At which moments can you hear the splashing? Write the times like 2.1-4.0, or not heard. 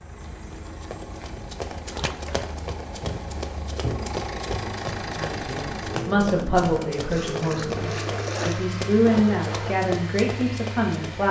1.9-2.5, 7.0-8.8.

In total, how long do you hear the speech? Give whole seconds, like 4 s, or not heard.
6 s.